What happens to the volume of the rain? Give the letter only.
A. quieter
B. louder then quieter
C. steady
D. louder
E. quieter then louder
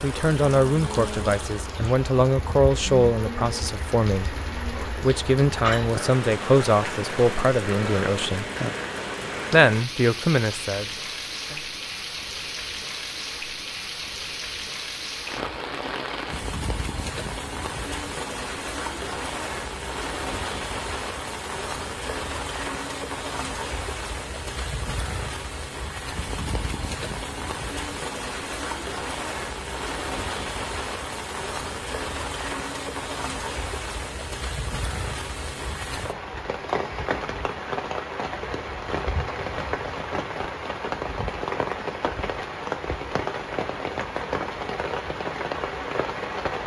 C.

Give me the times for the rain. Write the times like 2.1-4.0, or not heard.
0.0-46.6.